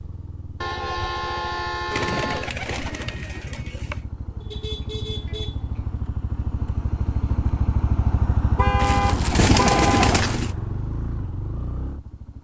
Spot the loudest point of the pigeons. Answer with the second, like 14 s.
10 s.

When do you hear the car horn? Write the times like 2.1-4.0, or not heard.
0.6-2.5, 4.4-6.0, 8.6-10.2.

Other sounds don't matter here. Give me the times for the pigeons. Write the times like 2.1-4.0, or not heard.
1.9-4.0, 8.8-10.6.